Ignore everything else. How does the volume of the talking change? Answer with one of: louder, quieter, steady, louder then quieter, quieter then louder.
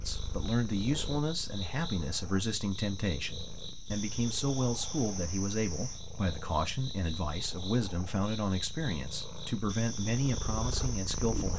steady.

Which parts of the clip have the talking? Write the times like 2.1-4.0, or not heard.
0.0-11.5.